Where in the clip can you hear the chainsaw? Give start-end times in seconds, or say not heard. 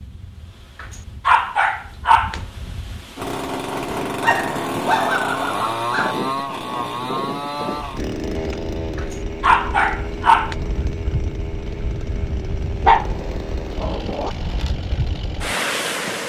3.1-16.2.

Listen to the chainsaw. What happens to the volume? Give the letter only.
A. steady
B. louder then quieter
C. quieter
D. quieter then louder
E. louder
C.